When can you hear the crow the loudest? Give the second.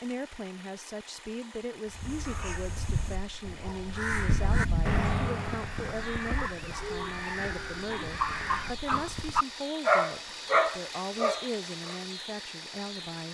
5 s.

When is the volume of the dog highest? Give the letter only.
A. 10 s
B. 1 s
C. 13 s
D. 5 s
A.